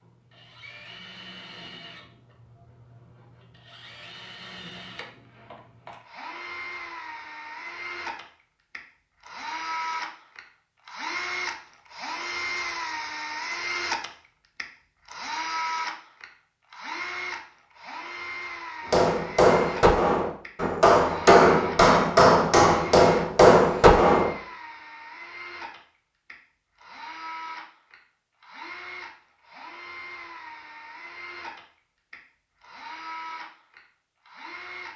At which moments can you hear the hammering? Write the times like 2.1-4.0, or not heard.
18.9-24.3.